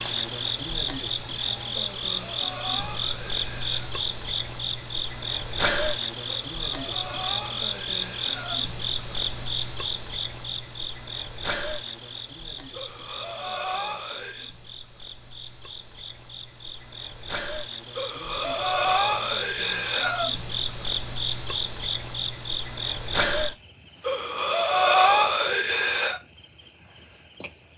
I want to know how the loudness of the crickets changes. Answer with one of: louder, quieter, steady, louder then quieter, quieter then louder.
quieter then louder.